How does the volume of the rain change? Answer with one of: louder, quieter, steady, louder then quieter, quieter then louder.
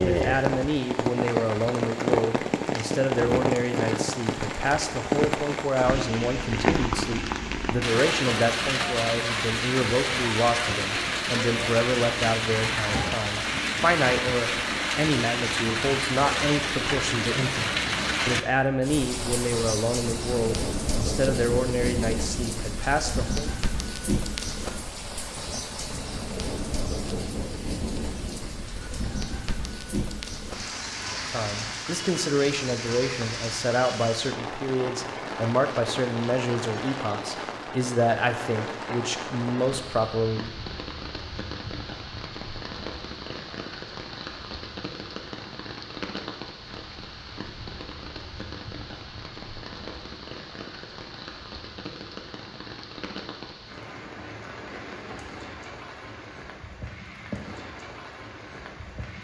quieter.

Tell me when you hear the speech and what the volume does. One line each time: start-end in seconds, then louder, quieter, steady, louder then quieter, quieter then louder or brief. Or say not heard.
0.0-23.5 steady
31.1-40.5 steady.